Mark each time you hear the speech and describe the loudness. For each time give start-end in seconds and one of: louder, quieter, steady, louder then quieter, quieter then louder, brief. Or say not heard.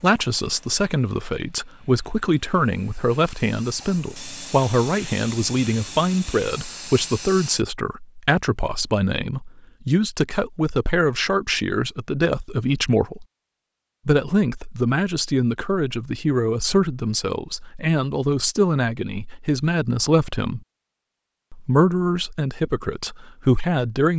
0.0-13.2 steady
14.1-20.6 steady
21.5-24.1 brief.